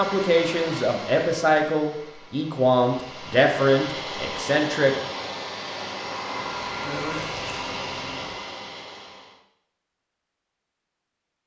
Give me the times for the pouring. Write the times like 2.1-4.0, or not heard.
6.3-8.3.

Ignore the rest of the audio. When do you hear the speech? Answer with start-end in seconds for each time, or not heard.
0.0-5.0.